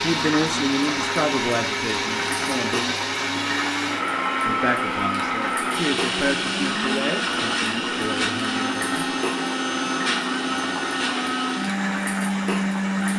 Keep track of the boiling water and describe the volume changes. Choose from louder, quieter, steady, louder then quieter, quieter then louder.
steady.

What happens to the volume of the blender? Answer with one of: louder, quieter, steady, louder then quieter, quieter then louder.
steady.